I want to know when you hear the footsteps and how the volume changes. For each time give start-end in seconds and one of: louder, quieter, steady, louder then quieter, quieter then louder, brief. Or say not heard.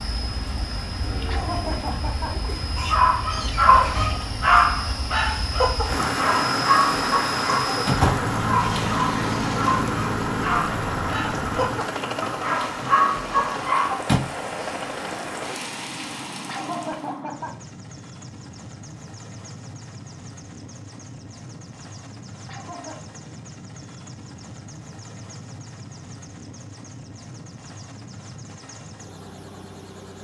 not heard.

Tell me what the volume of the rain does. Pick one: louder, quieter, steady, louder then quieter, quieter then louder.
louder then quieter.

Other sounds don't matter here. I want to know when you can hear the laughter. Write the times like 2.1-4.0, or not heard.
1.2-2.6, 16.4-17.6, 22.4-23.1.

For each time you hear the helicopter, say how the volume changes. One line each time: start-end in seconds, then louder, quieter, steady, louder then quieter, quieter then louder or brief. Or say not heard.
0.0-30.2 louder then quieter.